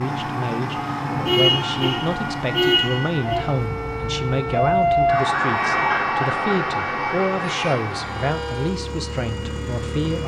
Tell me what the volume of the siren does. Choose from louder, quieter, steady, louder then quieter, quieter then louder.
louder then quieter.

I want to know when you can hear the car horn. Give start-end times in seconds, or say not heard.
1.2-3.4, 7.5-8.8.